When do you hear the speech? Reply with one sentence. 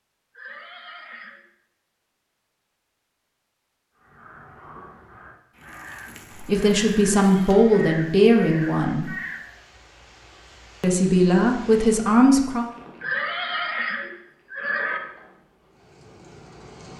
You can hear the speech from 6.5 to 9.1 s and from 10.8 to 12.7 s.